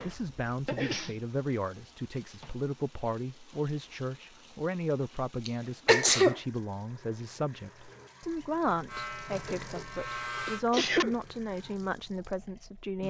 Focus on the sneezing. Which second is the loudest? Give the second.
6 s.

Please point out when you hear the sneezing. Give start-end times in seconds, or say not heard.
0.1-1.1, 5.5-6.3, 10.4-11.2.